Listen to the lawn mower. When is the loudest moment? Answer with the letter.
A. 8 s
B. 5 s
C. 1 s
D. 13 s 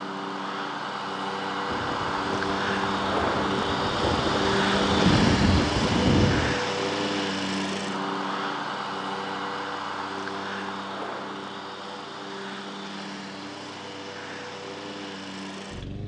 B.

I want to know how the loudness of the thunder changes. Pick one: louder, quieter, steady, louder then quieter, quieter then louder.
louder.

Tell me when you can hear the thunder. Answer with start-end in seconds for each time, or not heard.
1.6-6.6.